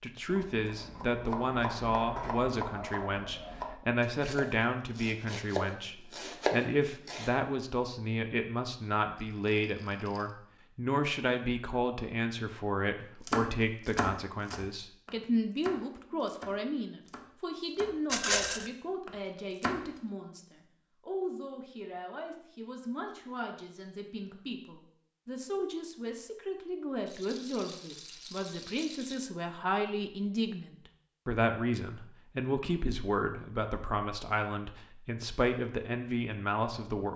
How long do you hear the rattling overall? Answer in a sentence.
The rattling can be heard for 4 seconds in total.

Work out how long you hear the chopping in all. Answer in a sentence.
You can hear the chopping for 14 seconds altogether.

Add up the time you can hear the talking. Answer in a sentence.
The talking can be heard for 37 seconds in total.